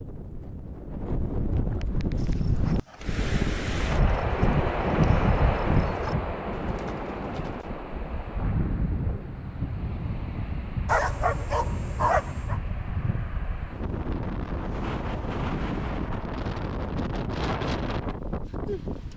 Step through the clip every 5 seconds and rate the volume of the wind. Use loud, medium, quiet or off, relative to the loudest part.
loud, loud, medium, loud.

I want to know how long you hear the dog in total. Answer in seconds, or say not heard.
2 s.